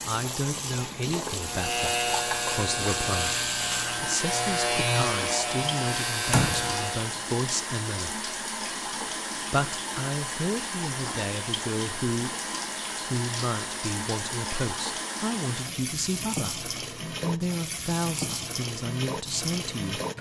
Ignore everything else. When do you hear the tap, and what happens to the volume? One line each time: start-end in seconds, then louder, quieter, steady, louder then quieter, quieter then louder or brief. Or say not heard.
0.0-20.1 steady.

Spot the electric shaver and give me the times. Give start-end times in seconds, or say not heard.
1.4-7.1.